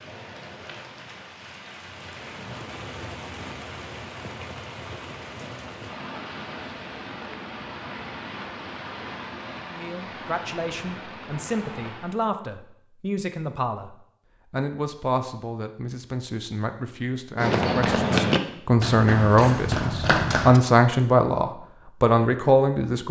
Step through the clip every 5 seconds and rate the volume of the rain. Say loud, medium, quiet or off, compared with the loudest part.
loud, loud, loud, off, off.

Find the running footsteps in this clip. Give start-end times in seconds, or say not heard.
17.4-20.6.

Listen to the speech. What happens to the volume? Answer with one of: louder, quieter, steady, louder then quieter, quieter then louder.
louder.